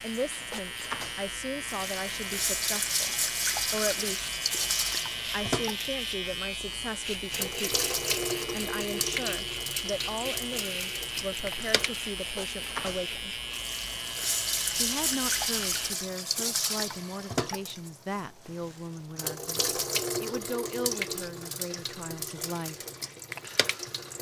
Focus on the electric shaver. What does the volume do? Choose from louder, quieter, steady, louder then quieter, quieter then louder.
steady.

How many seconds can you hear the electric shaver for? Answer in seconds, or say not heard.
16 s.